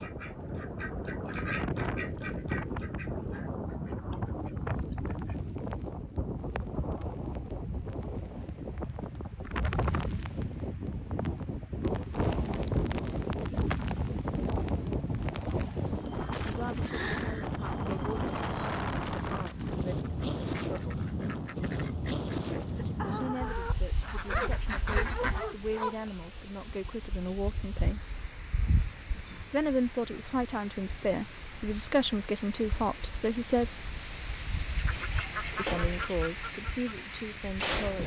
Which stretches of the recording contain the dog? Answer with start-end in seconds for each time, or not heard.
24.2-26.1.